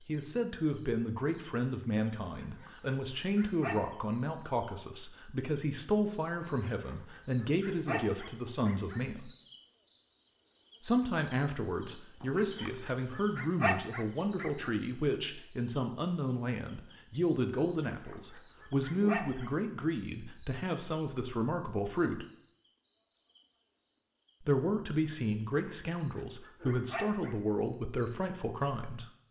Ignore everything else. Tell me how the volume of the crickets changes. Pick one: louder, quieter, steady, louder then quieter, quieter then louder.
louder then quieter.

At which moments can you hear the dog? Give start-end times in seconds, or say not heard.
2.2-3.8, 6.5-9.1, 12.2-14.7, 17.9-19.5, 25.5-27.6.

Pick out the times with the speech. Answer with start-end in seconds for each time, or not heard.
0.0-9.3, 10.8-22.2, 24.4-29.1.